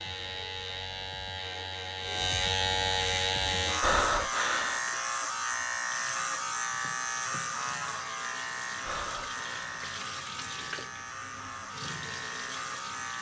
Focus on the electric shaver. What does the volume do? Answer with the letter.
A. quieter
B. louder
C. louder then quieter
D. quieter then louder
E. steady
A.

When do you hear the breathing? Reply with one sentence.
The breathing can be heard from 3.8 to 4.8 s and from 8.8 to 9.8 s.